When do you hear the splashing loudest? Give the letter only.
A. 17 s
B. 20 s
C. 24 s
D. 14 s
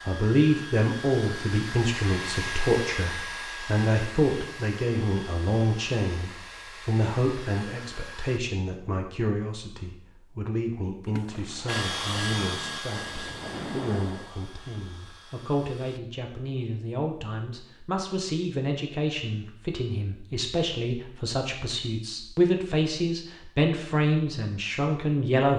D.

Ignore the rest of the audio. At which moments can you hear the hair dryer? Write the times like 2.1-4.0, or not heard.
0.0-8.4, 11.7-16.0.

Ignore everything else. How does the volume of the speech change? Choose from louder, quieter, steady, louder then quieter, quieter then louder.
quieter then louder.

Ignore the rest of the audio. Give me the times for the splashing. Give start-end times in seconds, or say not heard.
11.0-14.4.